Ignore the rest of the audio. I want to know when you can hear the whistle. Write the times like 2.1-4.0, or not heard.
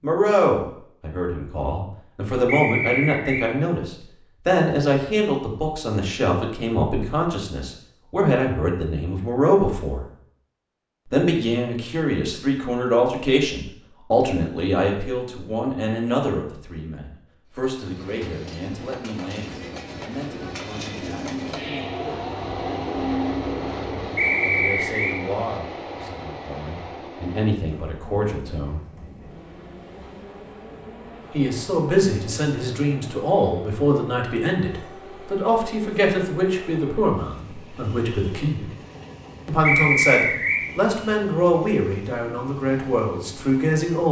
2.5-3.5, 24.1-25.1, 39.6-40.6.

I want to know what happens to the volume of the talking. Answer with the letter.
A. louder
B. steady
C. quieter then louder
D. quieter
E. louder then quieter
C.